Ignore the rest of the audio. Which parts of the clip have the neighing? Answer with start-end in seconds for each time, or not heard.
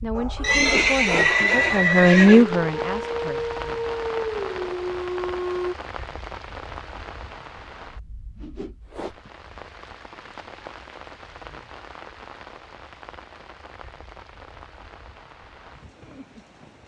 0.4-2.5.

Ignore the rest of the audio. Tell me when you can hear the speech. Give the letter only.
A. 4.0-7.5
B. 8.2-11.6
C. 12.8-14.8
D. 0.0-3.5
D.